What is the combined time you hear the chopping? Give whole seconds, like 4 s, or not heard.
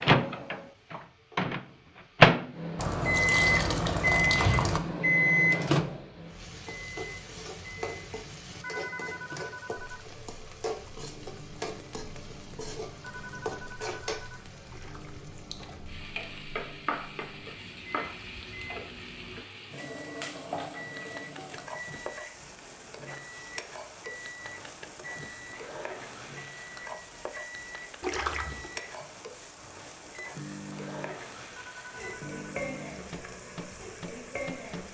not heard.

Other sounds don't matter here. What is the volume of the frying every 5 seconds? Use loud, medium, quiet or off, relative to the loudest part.
quiet, loud, loud, loud, loud, loud, loud.